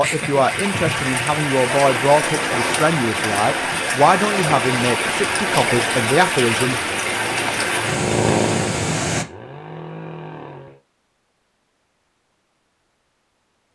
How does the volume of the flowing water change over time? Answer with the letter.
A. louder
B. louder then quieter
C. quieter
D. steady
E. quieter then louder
D.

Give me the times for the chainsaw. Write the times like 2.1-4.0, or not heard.
6.8-10.8.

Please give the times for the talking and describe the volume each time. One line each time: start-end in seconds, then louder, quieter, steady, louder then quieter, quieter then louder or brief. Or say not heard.
0.0-6.8 steady.